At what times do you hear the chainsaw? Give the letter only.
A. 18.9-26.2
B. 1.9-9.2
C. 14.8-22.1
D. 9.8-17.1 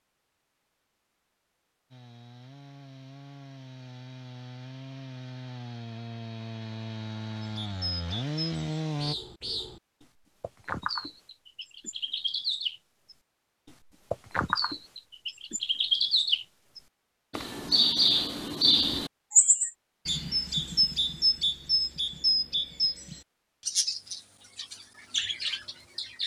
B.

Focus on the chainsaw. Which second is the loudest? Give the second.
9 s.